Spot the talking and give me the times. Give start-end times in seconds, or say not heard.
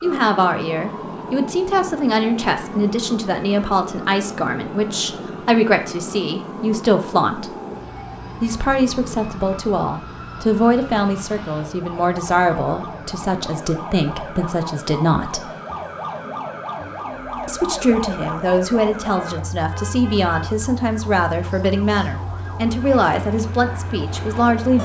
0.0-7.5, 8.4-15.5, 17.4-24.8.